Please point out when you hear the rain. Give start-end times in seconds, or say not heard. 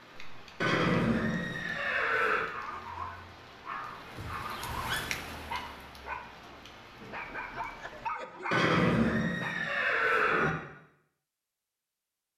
0.0-8.1.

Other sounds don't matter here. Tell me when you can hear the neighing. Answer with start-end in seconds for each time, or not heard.
0.6-2.5, 4.2-5.0, 8.5-10.5.